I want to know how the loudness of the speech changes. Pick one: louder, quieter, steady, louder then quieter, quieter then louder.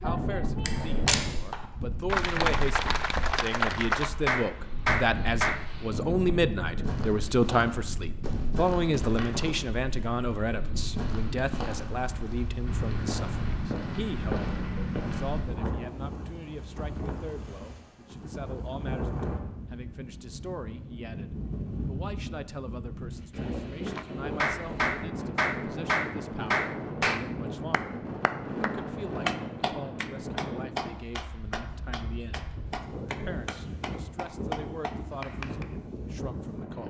quieter.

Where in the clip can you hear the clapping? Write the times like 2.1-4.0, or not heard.
0.0-5.7, 23.9-35.7.